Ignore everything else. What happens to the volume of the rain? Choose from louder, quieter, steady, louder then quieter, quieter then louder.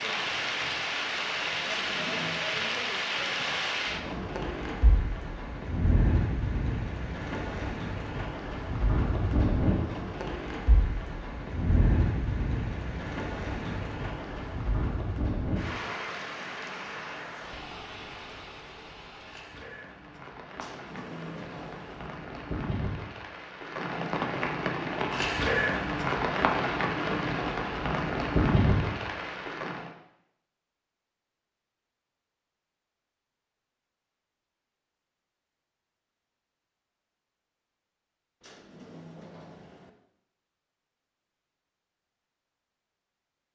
quieter then louder.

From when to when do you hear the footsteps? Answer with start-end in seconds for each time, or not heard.
not heard.